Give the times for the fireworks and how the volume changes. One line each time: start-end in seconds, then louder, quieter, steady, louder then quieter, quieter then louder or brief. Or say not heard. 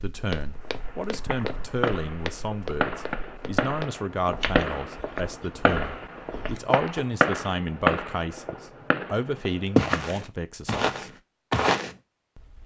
0.6-10.1 louder then quieter.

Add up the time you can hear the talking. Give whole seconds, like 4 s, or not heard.
11 s.